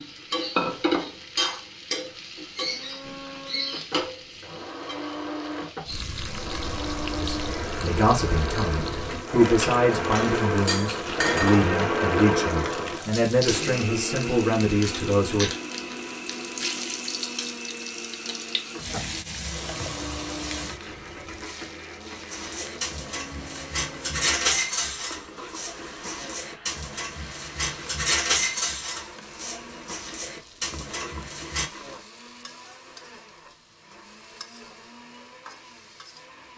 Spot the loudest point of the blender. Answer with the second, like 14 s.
12 s.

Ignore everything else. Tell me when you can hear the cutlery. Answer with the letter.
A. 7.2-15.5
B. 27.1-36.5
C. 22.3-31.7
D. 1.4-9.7
C.